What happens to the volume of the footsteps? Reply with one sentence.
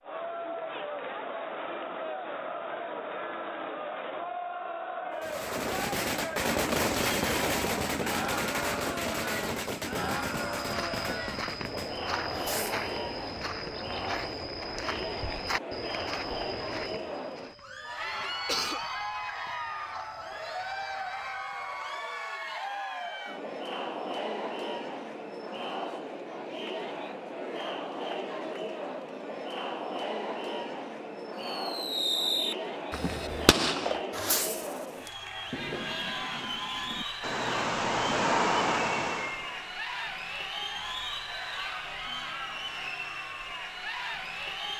The volume of the footsteps goes down.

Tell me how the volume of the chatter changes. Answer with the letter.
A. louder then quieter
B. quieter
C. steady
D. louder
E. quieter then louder
C.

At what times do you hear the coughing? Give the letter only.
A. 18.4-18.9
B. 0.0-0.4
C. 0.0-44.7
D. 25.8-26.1
A.